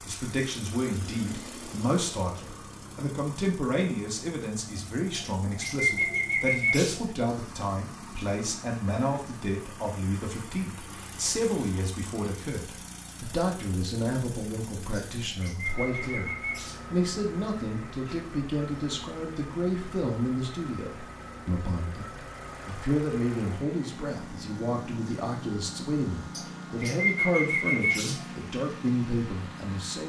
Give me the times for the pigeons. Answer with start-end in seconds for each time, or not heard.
5.1-7.2, 14.9-16.9, 26.3-28.4.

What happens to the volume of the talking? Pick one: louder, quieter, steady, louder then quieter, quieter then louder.
steady.